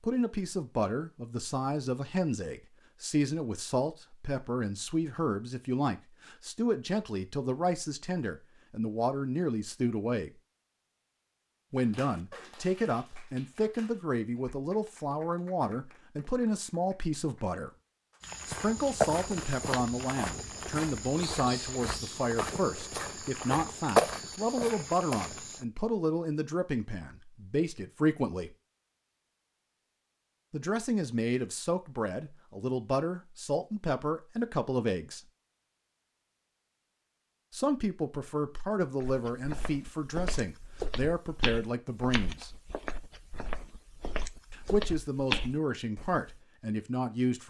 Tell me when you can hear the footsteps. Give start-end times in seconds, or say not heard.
18.2-25.6, 39.0-46.4.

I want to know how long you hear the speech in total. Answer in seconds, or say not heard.
39 s.